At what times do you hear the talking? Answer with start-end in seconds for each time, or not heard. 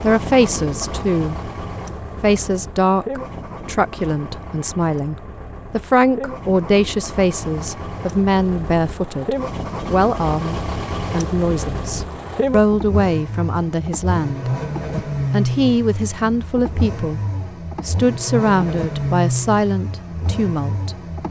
0.0-1.5, 2.2-14.5, 15.3-17.2, 17.9-21.2.